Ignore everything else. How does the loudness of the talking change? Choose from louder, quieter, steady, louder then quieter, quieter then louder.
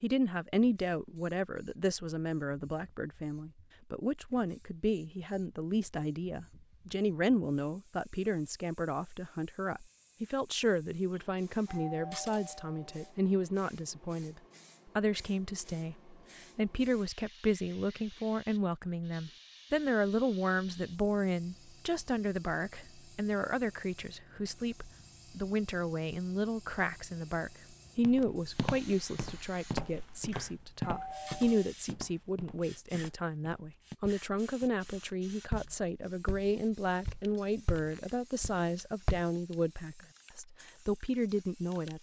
steady.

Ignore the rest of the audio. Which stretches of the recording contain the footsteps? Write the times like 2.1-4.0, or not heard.
27.9-39.2.